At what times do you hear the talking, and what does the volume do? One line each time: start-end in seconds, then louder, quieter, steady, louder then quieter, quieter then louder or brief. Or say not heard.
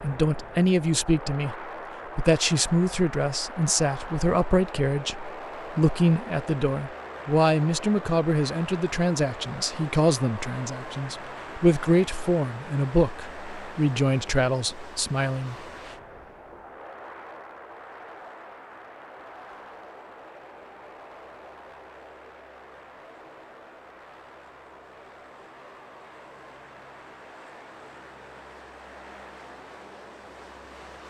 0.0-15.6 steady.